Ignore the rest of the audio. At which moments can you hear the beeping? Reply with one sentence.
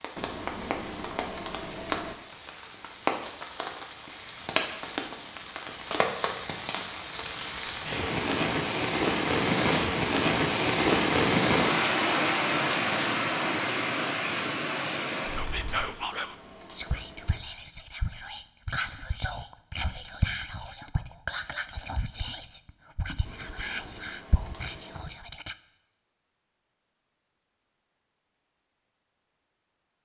You can hear the beeping from 0.1 to 2.1 s, from 15.7 to 17.4 s and from 23.2 to 25.1 s.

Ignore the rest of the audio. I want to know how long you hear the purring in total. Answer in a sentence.
You can't hear the purring here.